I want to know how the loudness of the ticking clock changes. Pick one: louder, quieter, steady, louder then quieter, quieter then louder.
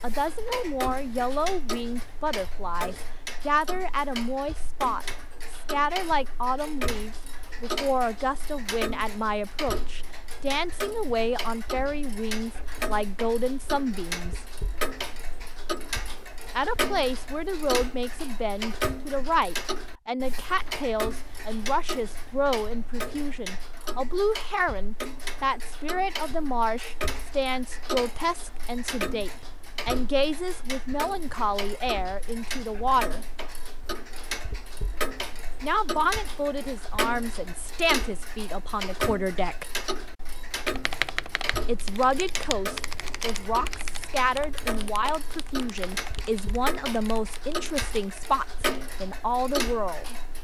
steady.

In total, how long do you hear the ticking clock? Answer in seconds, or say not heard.
50 s.